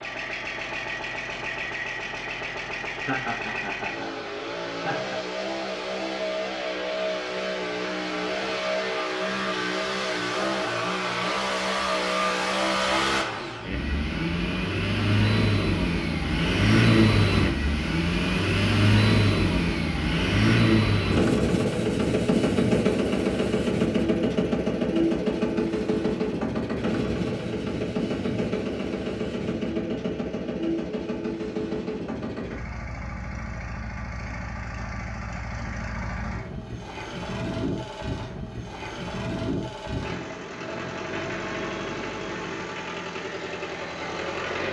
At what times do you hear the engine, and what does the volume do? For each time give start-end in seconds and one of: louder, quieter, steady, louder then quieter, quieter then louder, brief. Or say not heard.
0.0-44.6 louder then quieter.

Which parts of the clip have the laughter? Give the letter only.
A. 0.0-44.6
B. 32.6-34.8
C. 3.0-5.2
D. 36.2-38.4
C.